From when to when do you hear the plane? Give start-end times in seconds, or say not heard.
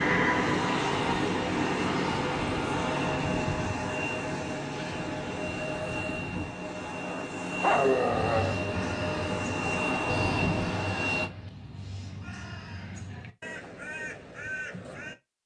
0.0-11.3.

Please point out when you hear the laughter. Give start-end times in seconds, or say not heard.
not heard.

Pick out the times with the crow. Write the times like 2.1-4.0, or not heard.
8.1-15.2.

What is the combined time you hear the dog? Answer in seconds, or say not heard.
2 s.